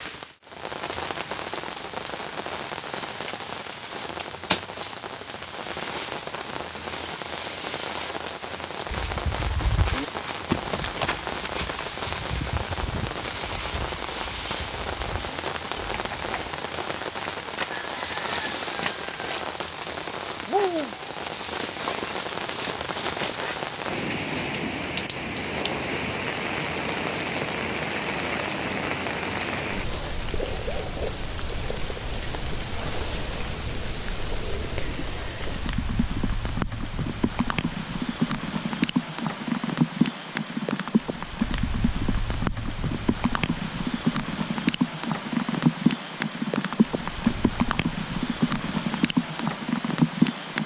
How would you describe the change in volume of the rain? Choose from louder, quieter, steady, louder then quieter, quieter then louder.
louder.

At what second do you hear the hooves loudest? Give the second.
11 s.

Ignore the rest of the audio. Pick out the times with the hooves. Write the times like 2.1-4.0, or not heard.
8.8-16.5.